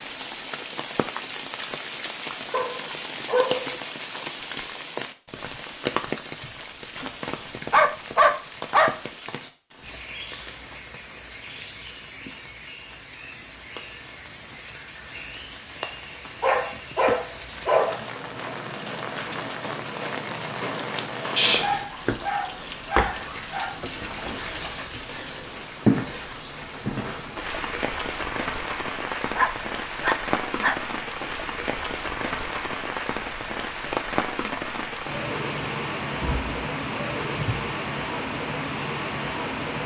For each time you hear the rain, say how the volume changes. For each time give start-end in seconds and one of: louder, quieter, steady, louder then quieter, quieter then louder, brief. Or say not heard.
0.0-39.8 quieter then louder.